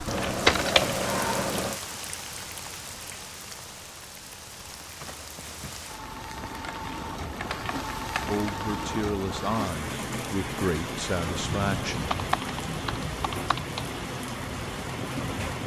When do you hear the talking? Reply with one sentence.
The talking can be heard from 8.2 to 12.2 s.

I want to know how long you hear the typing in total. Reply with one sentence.
You can hear the typing for 6 seconds altogether.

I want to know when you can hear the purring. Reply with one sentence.
The purring can't be heard in this clip.